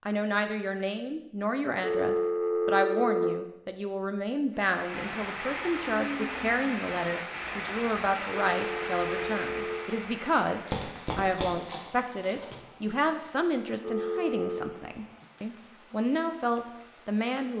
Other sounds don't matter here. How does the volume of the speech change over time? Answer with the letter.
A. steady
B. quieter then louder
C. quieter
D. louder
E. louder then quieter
A.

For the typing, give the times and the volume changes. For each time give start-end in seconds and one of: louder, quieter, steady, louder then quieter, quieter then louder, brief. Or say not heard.
not heard.